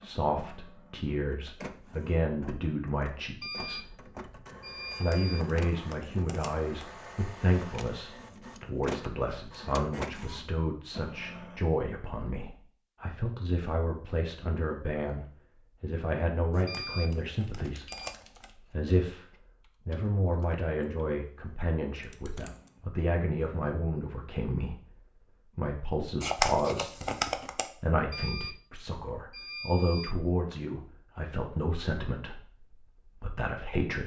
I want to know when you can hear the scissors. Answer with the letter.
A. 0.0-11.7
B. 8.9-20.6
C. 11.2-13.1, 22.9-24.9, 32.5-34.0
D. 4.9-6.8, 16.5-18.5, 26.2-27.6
D.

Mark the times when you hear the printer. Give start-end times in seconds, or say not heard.
0.0-11.7.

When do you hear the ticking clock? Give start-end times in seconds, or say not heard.
not heard.